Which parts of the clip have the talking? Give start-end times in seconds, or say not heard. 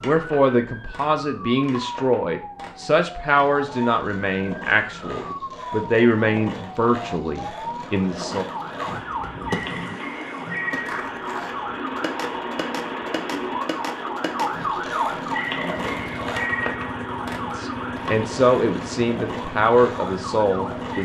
0.0-8.4, 17.4-21.0.